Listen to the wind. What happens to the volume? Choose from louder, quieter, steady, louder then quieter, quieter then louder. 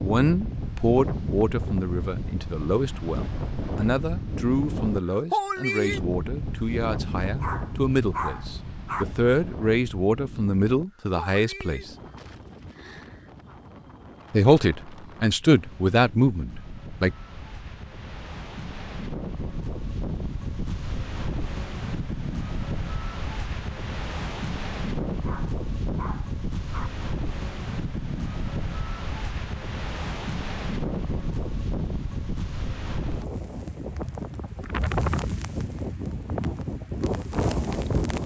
quieter then louder.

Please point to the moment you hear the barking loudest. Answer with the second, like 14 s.
8 s.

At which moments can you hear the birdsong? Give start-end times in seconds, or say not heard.
not heard.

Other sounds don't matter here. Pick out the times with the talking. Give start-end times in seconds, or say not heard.
0.0-11.9, 14.3-17.1.